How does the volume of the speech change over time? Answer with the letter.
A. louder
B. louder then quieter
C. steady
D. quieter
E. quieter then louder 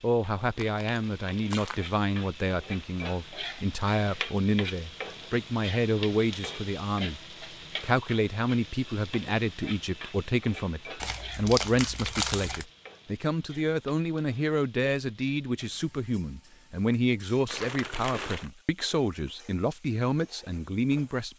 C.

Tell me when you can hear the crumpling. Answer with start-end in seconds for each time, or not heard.
0.4-1.8, 11.0-12.7, 17.4-18.5.